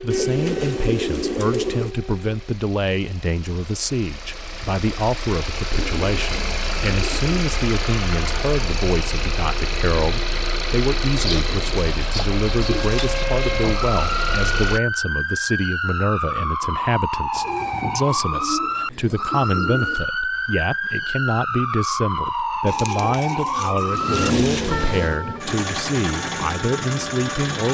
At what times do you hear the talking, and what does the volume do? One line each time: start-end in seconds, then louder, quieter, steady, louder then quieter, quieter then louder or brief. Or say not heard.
0.0-27.7 steady.